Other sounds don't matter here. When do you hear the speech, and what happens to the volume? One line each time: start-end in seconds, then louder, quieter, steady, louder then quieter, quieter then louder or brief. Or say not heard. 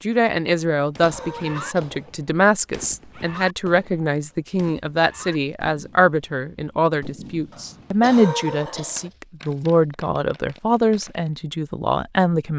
0.0-12.5 steady.